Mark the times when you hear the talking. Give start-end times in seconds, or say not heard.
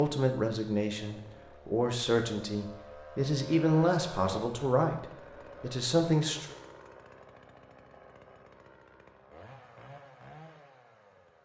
0.0-6.5.